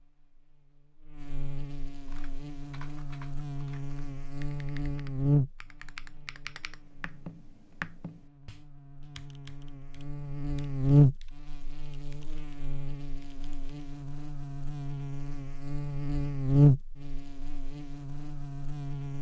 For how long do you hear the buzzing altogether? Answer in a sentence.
You can hear the buzzing for 19 seconds altogether.